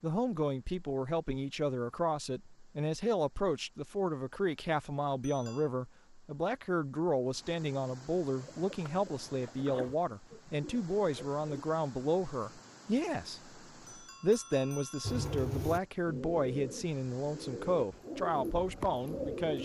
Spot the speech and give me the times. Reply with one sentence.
You can hear the speech from 0.0 to 19.6 s.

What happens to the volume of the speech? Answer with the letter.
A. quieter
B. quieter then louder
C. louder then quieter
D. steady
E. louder
D.